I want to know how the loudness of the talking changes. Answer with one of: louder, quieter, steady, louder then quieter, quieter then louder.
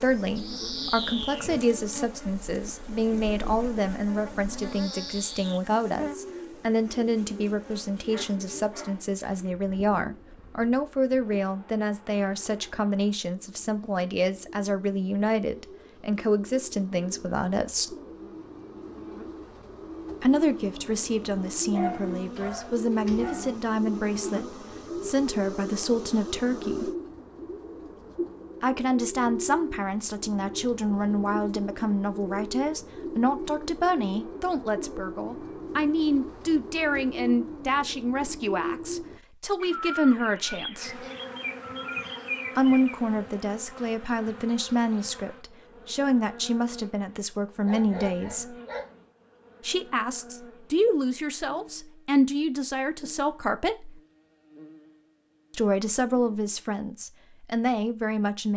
steady.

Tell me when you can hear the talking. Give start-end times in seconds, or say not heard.
0.0-17.9, 20.2-26.9, 28.6-41.0, 42.5-48.5, 49.6-54.0, 55.5-58.5.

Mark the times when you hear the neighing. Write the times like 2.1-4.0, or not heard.
not heard.